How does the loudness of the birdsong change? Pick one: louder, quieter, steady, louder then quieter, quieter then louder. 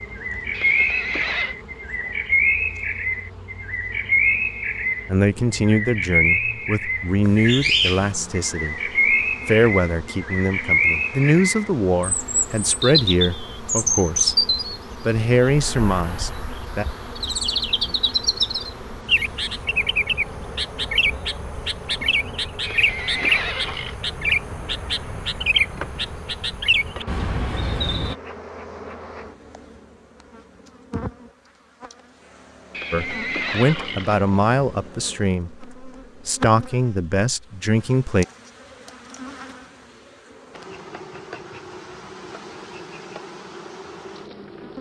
steady.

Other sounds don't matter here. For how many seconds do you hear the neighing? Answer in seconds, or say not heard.
4 s.